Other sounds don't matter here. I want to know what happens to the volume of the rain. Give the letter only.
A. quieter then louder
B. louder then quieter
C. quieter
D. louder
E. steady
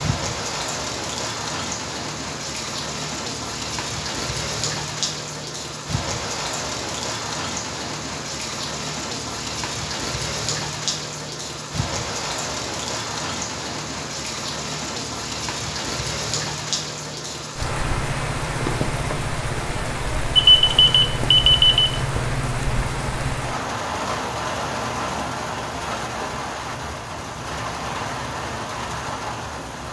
E.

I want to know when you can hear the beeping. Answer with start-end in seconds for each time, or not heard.
20.4-21.9.